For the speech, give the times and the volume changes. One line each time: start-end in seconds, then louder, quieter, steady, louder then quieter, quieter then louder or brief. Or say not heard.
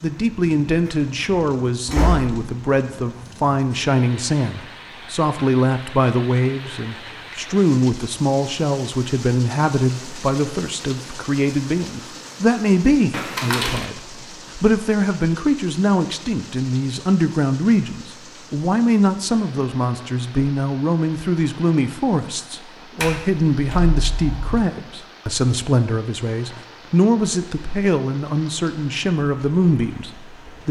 0.0-30.6 steady.